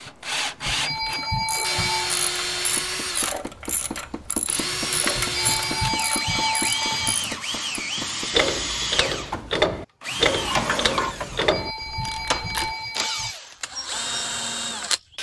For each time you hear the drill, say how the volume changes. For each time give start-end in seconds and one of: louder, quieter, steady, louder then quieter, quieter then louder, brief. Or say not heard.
0.0-15.1 steady.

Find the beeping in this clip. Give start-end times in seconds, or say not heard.
0.7-2.1, 5.2-7.2, 11.3-13.3.